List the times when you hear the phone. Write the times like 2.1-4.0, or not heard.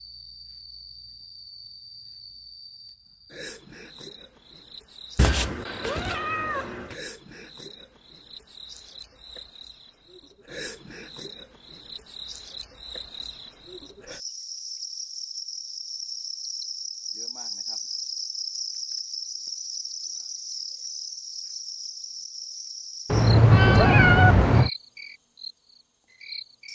not heard.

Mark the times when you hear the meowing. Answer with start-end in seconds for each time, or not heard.
5.2-7.0, 23.1-24.7.